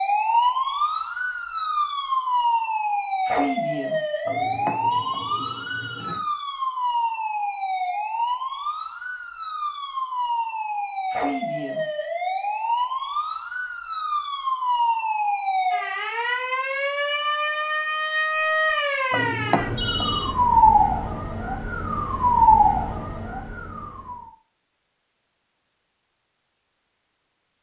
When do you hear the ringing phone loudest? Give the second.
20 s.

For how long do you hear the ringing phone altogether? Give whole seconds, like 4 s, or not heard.
3 s.